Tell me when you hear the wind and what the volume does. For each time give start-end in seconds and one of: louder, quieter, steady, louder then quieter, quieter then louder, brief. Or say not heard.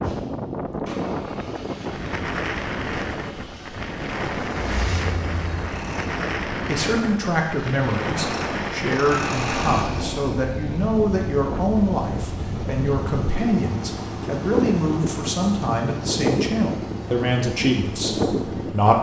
0.0-18.9 steady.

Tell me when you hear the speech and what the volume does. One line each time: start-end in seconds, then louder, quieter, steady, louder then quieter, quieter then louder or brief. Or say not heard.
6.5-18.9 steady.